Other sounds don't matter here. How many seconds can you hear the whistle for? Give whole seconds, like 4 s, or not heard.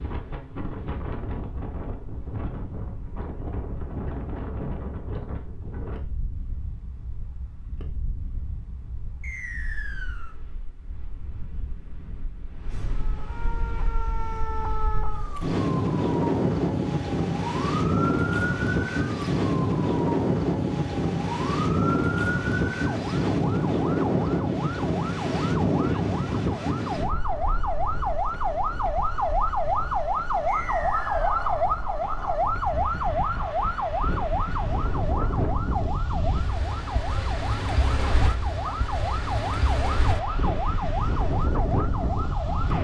2 s.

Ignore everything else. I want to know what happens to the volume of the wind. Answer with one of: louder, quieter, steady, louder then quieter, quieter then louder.
louder then quieter.